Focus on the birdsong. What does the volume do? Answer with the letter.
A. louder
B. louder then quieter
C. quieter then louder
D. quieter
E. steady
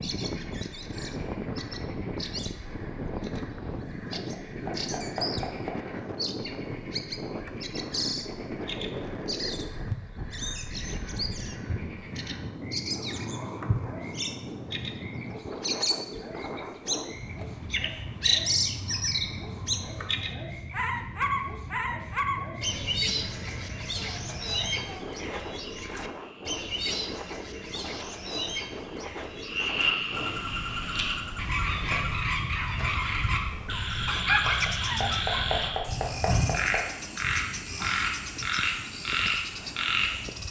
B.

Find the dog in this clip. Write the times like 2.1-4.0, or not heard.
34.0-35.5.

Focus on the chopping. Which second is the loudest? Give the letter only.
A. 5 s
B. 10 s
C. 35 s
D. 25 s
C.